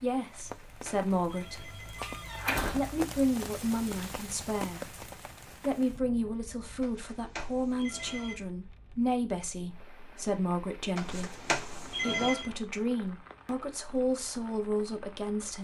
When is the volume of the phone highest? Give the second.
12 s.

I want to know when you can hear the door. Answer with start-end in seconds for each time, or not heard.
1.9-2.9.